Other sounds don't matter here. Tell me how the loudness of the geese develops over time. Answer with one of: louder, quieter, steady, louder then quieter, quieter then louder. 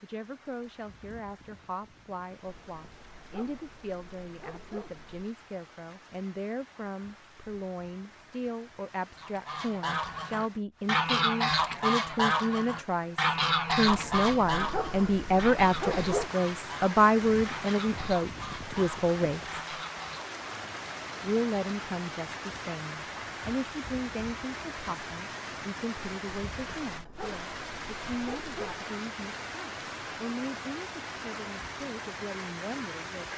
quieter.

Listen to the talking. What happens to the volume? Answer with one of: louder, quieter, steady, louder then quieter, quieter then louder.
louder then quieter.